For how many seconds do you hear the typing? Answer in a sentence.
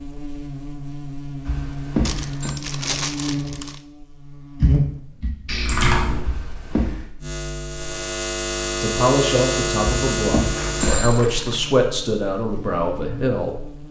The typing can be heard for 2 seconds in total.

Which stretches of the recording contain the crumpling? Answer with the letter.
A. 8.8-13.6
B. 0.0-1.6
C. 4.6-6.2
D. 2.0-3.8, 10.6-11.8
D.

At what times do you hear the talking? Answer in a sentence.
The talking can be heard from 8.8 to 13.6 s.